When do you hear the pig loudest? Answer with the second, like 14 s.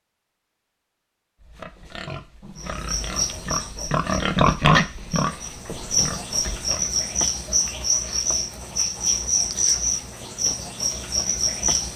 5 s.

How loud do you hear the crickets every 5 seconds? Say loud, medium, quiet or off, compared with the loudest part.
medium, loud, loud.